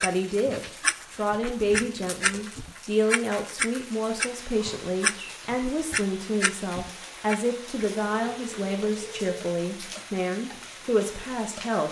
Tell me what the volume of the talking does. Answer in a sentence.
The volume of the talking stays about the same.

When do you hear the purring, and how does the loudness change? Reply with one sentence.
You can't hear the purring here.